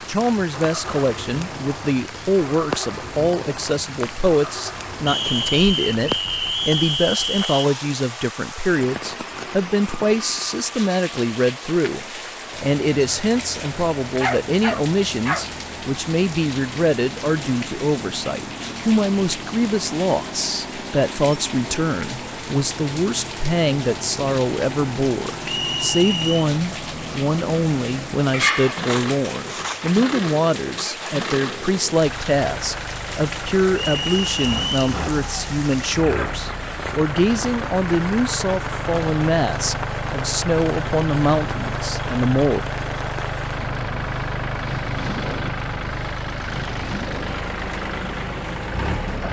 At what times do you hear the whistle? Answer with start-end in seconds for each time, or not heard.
5.0-7.7, 25.4-26.4, 33.7-34.8.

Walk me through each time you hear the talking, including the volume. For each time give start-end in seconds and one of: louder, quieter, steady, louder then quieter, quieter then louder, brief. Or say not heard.
0.1-42.6 steady.